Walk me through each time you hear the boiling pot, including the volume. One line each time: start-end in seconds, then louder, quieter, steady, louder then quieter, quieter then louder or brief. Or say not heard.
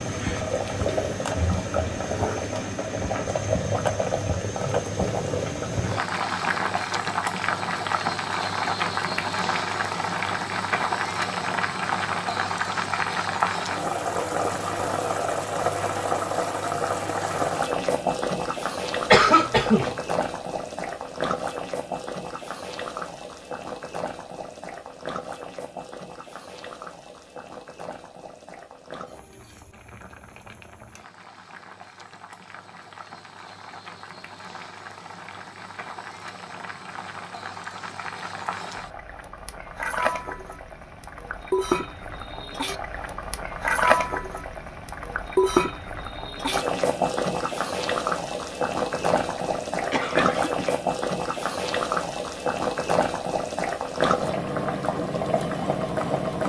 0.0-56.4 quieter then louder.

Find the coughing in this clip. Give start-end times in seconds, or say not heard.
19.1-19.9, 48.8-50.7.